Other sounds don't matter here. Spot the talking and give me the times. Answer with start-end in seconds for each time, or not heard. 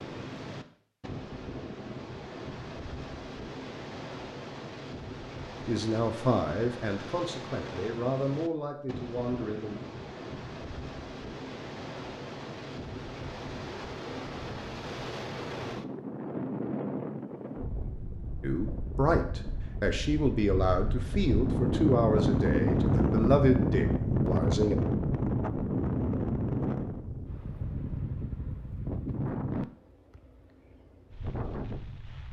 5.7-9.8, 18.4-24.8.